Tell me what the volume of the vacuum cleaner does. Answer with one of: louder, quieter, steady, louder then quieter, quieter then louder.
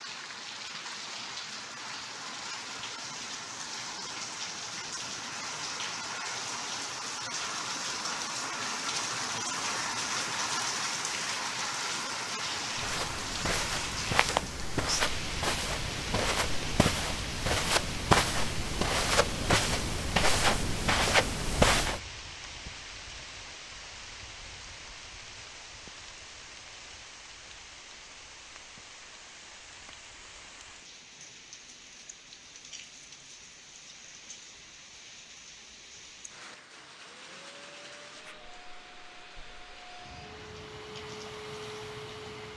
louder.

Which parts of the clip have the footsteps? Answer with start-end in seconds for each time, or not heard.
12.8-22.0.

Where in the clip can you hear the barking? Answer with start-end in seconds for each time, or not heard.
not heard.